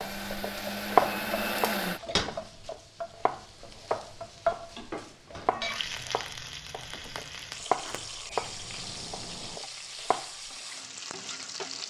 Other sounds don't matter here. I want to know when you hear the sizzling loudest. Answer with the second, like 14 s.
4 s.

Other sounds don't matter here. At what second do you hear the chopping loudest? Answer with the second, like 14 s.
1 s.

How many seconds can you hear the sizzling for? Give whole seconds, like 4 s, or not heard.
12 s.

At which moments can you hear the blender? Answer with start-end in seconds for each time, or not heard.
0.0-2.0.